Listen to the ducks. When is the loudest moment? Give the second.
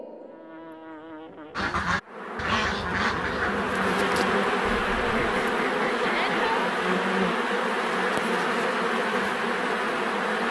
3 s.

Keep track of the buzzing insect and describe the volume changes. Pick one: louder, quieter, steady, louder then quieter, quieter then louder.
louder.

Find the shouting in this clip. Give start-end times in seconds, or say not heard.
6.0-6.7.